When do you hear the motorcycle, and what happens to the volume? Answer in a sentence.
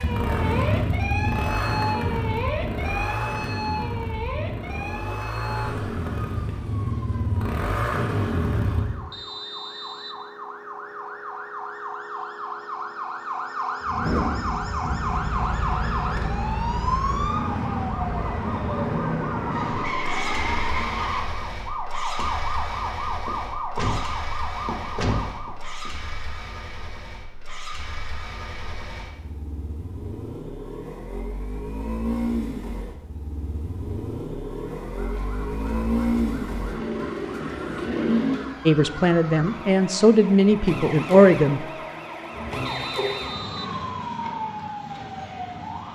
You can hear the motorcycle from 0.0 to 9.0 s, getting quieter then louder; and from 13.8 to 38.5 s, getting quieter then louder.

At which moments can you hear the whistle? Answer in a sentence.
The whistle can be heard from 9.1 to 10.2 s and from 42.6 to 43.8 s.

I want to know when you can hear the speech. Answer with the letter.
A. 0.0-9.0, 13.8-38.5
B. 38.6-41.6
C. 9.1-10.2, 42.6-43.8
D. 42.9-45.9
B.